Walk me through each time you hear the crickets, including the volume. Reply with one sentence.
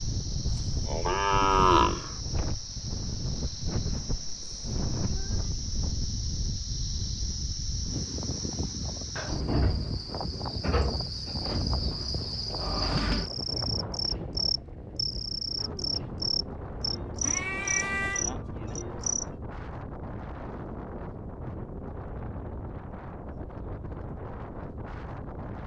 The crickets can be heard from 0.0 to 19.2 s, getting louder.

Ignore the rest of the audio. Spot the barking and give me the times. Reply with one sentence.
You can't hear the barking here.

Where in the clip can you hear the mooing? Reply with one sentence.
You can hear the mooing from 0.8 to 2.1 s.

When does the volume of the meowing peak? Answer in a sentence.
The loudest moment of the meowing is at 18 seconds.